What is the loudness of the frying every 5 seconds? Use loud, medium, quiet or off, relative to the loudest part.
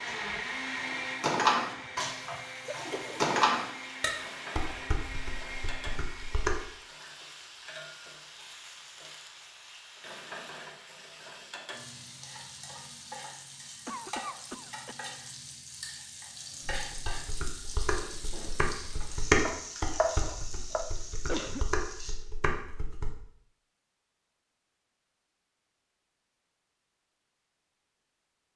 loud, medium, loud, loud, loud, off.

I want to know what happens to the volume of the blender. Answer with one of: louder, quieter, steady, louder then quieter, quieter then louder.
quieter.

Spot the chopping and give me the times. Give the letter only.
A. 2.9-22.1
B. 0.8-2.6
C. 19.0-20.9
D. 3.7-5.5
C.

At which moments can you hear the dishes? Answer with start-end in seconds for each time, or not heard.
0.1-6.5, 16.6-23.1.